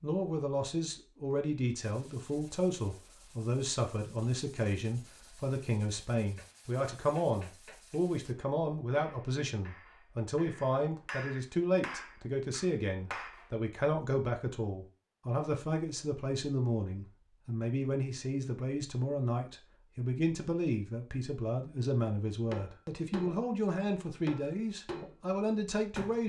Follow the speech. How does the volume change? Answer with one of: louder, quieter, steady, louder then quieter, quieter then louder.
steady.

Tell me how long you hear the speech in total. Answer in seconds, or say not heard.
26 s.